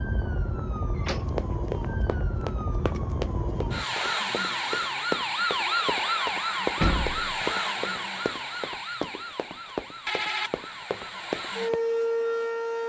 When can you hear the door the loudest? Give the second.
7 s.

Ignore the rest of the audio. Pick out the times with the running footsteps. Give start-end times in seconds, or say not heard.
1.2-11.8.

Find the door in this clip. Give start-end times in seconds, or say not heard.
0.9-1.4, 6.8-7.4.